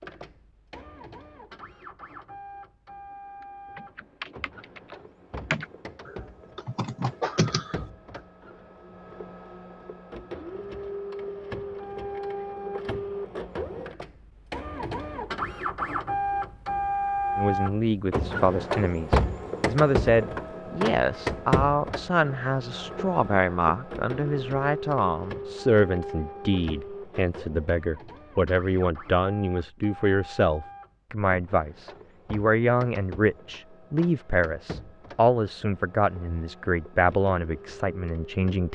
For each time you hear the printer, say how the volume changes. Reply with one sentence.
You can hear the printer from 0.0 to 38.6 s, getting louder then quieter.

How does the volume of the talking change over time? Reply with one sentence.
The volume of the talking stays about the same.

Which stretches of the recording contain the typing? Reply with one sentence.
The typing can be heard from 3.4 to 7.8 s.